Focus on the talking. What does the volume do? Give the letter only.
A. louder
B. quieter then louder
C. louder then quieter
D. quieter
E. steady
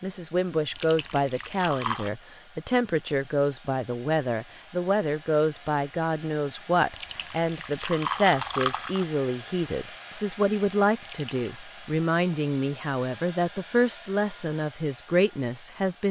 E.